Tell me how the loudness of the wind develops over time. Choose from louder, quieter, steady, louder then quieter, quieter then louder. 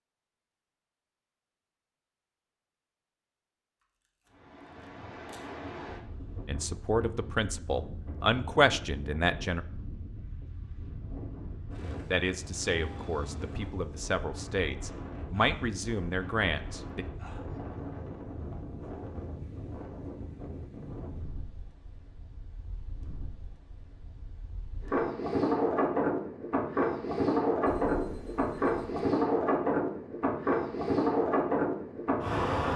louder.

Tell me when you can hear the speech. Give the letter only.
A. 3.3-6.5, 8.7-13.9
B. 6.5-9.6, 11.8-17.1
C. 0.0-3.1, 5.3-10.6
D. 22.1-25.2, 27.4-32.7
B.